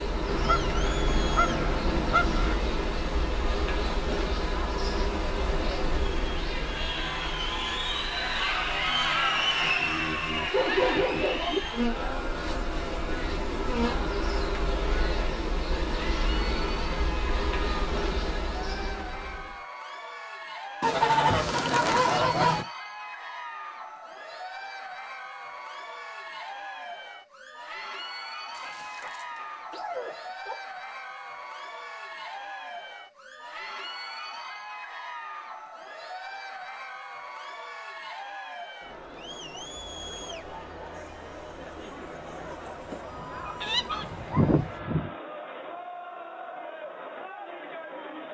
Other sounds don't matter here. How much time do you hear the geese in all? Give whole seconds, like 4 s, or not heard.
6 s.